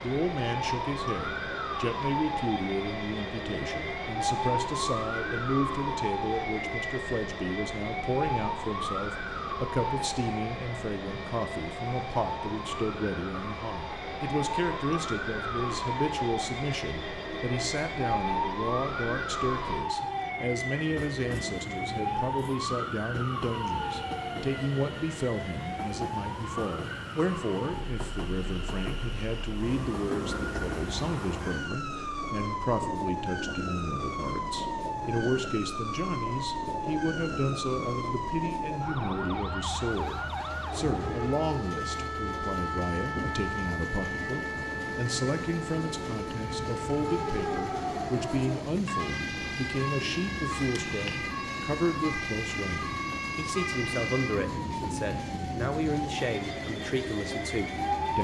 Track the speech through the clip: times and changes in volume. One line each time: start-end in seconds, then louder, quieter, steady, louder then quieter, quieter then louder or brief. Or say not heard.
0.0-58.2 steady.